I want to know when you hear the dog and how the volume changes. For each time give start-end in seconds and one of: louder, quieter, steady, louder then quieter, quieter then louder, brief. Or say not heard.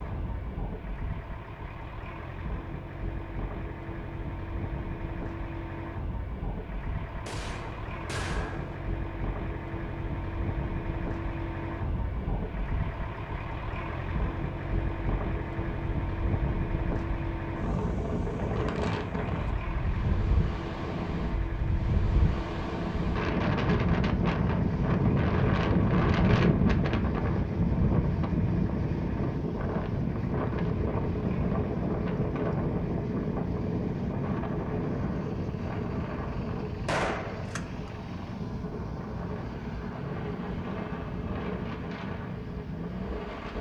not heard.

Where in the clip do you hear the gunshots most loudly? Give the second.
37 s.